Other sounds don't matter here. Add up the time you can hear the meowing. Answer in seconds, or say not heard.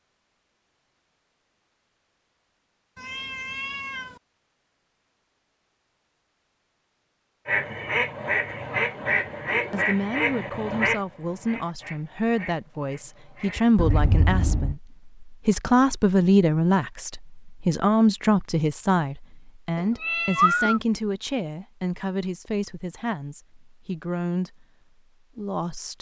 3 s.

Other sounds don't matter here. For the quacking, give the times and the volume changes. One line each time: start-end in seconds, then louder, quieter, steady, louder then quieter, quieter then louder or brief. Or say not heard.
7.5-14.1 quieter.